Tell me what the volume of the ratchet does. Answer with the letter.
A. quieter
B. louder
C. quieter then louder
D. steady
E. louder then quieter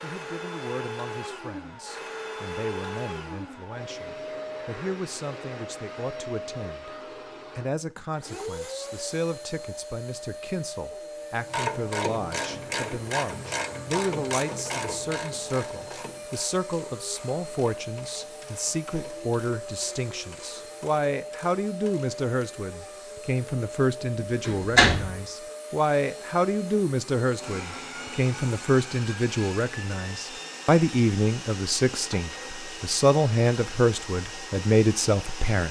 A.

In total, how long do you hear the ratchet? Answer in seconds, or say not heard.
11 s.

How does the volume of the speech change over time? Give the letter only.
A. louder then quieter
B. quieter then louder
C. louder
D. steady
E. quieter
C.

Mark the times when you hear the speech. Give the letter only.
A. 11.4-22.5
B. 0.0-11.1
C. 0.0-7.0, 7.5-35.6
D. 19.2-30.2
C.